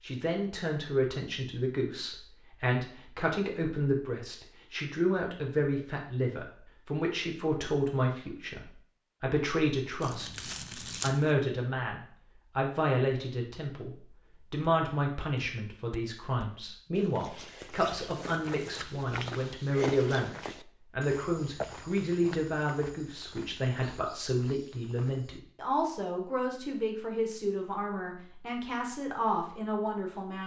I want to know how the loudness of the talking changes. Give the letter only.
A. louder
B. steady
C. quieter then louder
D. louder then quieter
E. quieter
B.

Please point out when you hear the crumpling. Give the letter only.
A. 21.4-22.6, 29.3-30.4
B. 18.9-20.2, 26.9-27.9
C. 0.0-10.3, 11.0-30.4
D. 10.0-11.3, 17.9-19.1
D.